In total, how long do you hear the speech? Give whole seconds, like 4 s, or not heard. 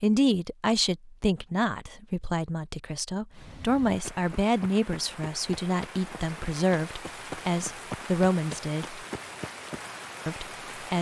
10 s.